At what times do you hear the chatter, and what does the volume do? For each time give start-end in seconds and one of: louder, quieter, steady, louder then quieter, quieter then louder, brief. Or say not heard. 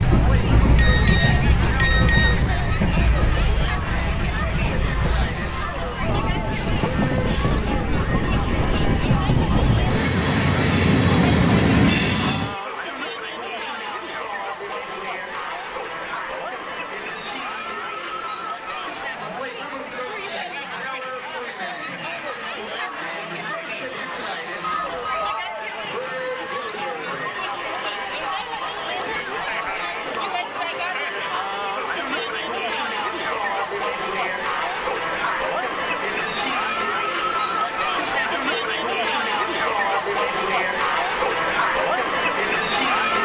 0.0-43.1 louder.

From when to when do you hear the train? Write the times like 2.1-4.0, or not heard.
0.0-12.6.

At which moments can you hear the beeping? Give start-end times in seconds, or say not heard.
0.8-2.5, 24.6-25.4.